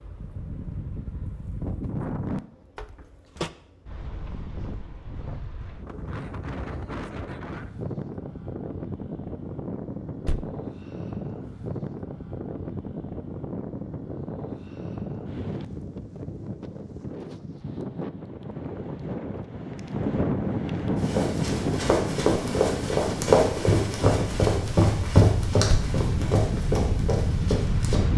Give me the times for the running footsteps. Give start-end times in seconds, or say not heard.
20.9-28.0.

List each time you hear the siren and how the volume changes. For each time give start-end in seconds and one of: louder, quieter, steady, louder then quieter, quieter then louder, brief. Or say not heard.
not heard.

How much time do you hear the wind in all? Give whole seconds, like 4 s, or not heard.
28 s.